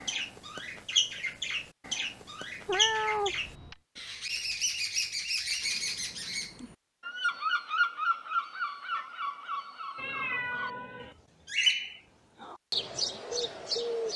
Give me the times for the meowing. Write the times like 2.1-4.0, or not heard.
2.6-3.8, 9.9-11.2.